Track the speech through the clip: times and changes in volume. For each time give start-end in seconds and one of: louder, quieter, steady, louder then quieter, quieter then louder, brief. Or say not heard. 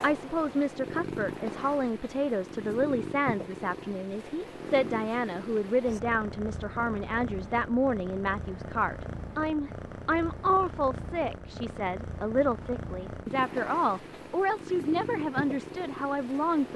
0.0-16.7 steady.